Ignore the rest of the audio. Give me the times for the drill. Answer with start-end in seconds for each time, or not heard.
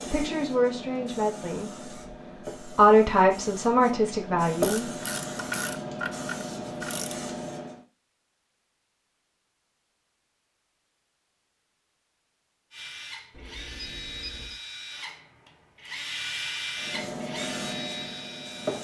12.7-18.7.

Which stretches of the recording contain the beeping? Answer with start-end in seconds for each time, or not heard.
13.3-14.6.